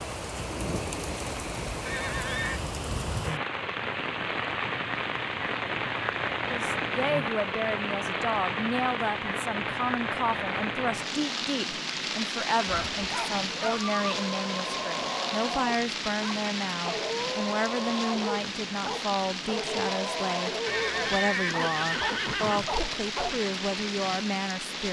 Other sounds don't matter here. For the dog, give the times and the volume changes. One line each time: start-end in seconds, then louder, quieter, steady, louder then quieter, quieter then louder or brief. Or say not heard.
12.7-23.3 steady.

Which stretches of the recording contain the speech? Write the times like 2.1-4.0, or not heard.
6.5-24.8.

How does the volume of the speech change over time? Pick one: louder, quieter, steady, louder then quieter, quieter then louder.
steady.